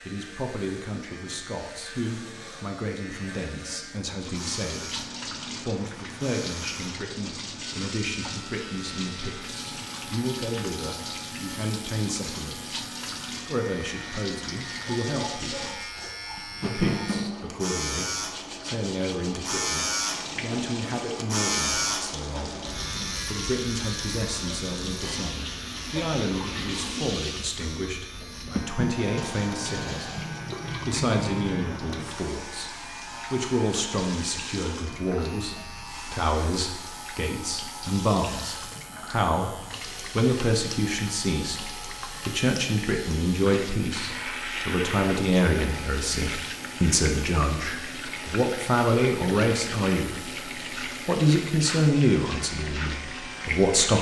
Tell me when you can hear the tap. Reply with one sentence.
You can hear the tap from 4.2 to 53.9 s.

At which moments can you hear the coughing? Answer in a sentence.
You can't hear the coughing here.